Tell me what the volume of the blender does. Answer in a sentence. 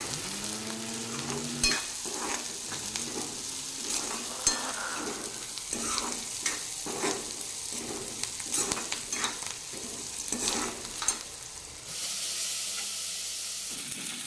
The loudness of the blender goes down, then up.